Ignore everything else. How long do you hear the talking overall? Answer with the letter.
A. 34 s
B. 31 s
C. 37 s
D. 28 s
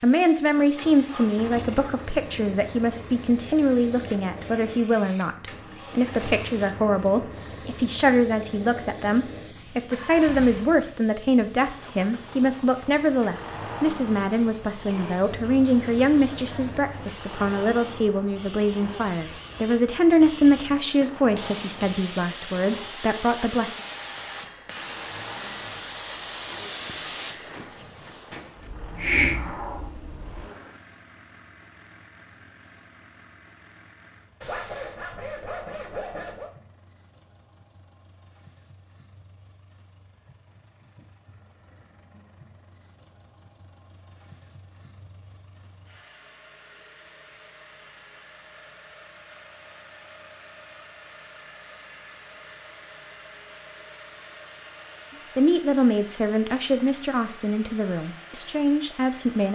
D.